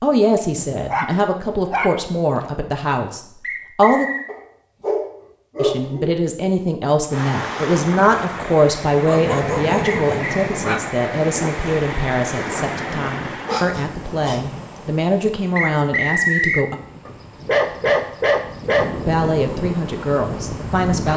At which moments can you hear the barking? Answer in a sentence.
The barking can be heard from 0.6 to 2.6 s, from 4.2 to 6.2 s, from 8.8 to 10.8 s, from 13.4 to 14.4 s and from 17.1 to 18.9 s.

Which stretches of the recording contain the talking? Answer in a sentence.
The talking can be heard from 0.0 to 4.1 s, from 5.5 to 16.8 s and from 19.1 to 21.1 s.